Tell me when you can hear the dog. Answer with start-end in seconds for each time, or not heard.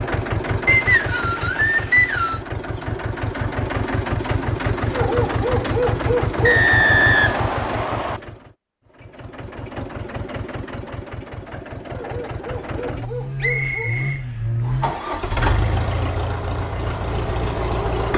4.9-6.7, 11.9-13.9.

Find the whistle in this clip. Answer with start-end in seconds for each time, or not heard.
0.7-2.4, 6.4-8.2, 13.4-14.9.